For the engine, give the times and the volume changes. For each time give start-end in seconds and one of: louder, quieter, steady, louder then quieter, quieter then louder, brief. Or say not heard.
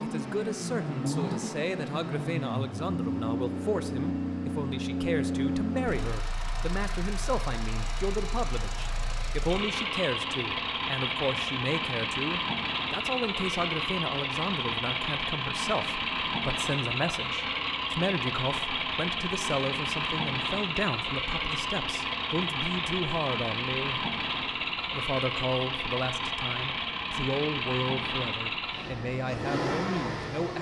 0.0-30.5 steady.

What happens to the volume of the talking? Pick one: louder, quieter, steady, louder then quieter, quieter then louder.
steady.